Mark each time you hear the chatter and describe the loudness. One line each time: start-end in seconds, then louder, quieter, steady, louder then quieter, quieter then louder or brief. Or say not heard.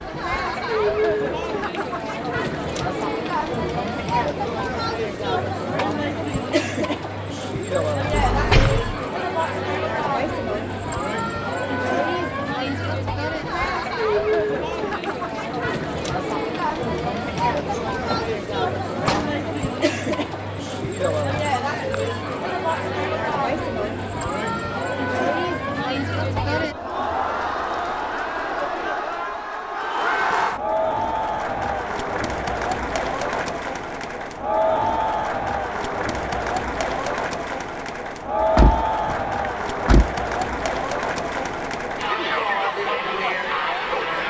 0.0-44.2 steady.